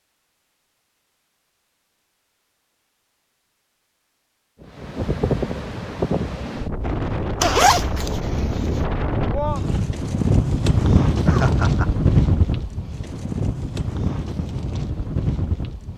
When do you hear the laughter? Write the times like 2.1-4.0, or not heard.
11.2-11.9.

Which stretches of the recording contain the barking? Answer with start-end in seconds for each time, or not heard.
not heard.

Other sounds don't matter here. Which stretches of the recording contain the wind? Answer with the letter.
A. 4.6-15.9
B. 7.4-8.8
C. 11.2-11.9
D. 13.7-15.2
A.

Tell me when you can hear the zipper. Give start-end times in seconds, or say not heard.
7.4-8.8.